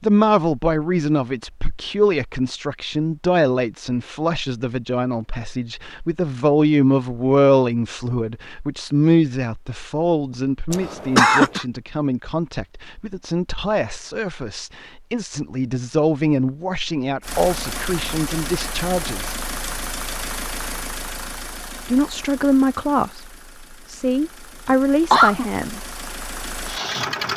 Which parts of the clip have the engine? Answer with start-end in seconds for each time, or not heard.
17.2-27.3.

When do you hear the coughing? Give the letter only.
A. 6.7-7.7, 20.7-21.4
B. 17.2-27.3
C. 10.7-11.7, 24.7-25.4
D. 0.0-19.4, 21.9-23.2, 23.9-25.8
C.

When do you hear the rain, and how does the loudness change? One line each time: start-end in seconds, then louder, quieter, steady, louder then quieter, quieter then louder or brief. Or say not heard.
not heard.